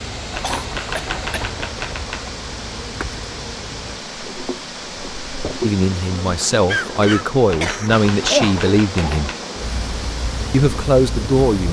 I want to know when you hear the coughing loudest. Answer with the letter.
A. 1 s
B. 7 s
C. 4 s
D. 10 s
B.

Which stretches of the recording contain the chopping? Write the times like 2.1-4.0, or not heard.
0.3-2.3, 7.5-9.4.